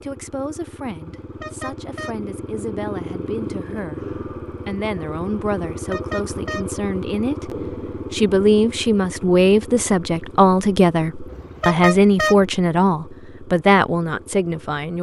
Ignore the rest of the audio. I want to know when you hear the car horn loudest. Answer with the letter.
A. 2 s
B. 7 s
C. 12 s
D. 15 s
C.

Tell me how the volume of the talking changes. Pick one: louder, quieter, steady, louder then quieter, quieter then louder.
louder.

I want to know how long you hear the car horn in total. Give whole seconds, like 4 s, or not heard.
3 s.